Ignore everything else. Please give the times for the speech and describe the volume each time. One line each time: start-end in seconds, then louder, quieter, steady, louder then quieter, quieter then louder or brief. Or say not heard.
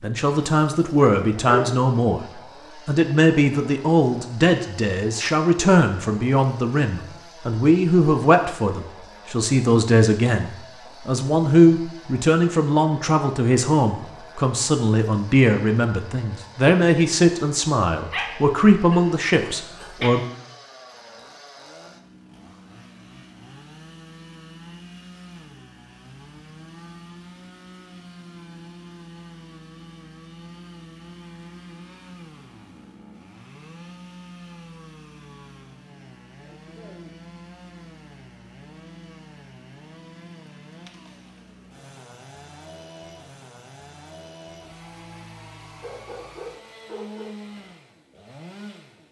0.0-20.2 steady.